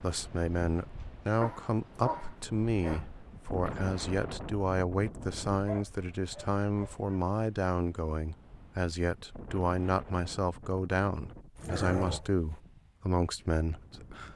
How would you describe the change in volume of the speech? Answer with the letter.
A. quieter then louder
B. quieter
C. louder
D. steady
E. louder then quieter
D.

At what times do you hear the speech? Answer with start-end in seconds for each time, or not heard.
0.0-14.3.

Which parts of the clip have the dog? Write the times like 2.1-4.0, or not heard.
1.4-3.0, 5.7-7.2, 11.6-12.6.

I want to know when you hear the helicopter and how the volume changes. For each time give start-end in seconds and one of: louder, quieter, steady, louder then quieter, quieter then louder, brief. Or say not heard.
not heard.